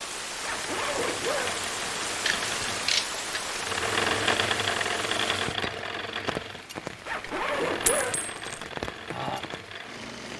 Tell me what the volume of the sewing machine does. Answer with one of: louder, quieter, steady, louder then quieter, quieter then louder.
louder then quieter.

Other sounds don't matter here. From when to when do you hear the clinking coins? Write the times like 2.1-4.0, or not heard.
2.2-3.1, 7.8-8.6.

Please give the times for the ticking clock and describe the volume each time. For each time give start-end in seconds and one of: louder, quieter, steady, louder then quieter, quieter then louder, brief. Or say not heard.
not heard.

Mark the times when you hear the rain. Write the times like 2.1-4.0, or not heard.
0.0-10.3.